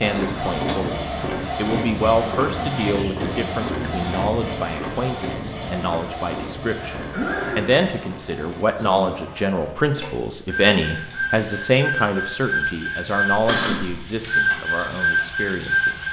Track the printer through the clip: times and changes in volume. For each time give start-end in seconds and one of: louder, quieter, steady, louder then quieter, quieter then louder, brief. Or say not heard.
0.0-16.0 quieter then louder.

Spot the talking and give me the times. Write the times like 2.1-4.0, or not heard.
0.0-16.0.